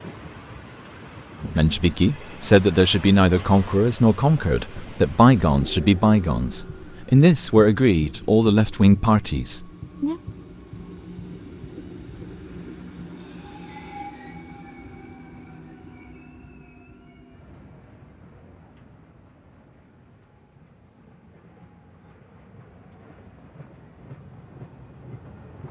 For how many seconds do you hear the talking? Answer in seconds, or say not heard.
9 s.